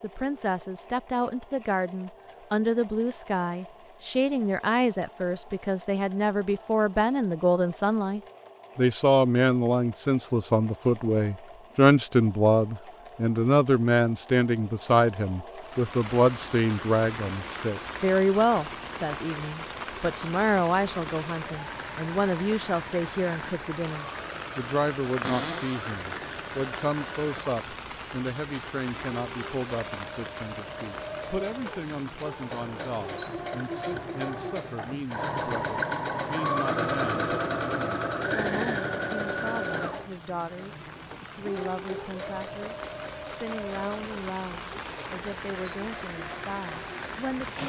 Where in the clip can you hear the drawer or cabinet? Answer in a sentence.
The drawer or cabinet can be heard from 25.2 to 25.9 s.